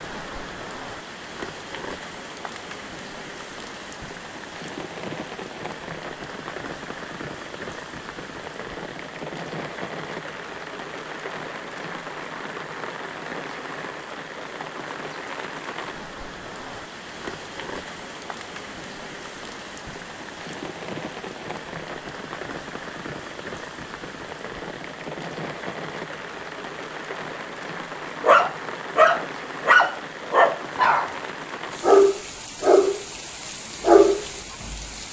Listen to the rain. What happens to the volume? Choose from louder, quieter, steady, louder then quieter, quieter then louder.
steady.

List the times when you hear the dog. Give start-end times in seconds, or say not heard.
28.2-31.1, 31.8-33.0, 33.8-34.9.